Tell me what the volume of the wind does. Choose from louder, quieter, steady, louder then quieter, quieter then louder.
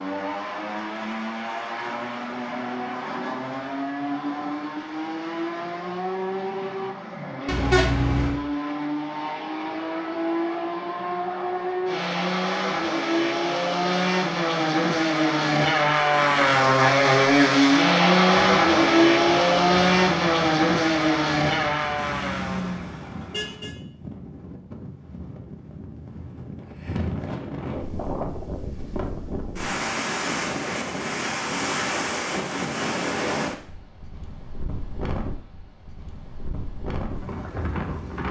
louder then quieter.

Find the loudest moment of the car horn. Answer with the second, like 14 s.
8 s.